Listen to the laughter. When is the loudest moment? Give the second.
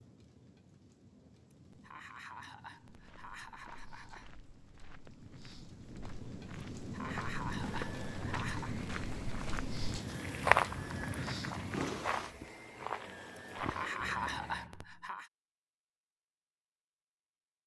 14 s.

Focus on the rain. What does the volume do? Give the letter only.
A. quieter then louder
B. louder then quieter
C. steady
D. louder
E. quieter
D.